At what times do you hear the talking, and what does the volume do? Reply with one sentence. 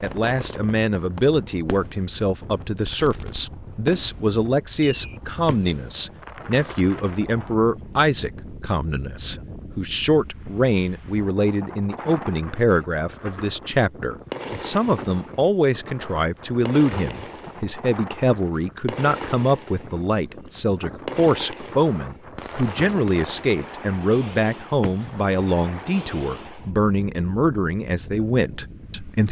You can hear the talking from 0.0 to 29.2 s, at a steady volume.